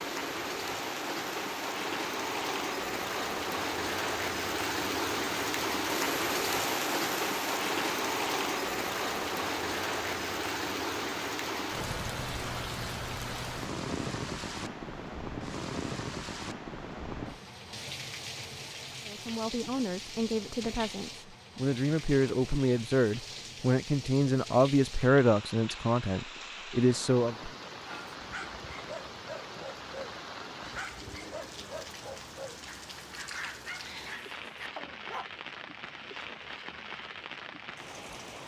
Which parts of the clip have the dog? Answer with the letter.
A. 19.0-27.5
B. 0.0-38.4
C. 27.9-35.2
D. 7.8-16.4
C.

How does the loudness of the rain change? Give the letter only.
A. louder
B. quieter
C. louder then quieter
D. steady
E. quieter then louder
B.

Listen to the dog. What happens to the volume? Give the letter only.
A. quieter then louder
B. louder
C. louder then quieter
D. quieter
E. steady
E.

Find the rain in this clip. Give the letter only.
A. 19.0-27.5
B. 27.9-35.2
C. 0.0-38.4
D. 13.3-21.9
C.